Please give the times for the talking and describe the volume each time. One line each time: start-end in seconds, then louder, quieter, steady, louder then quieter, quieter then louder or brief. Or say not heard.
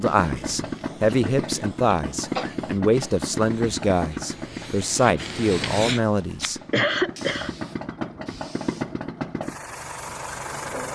0.0-6.6 steady.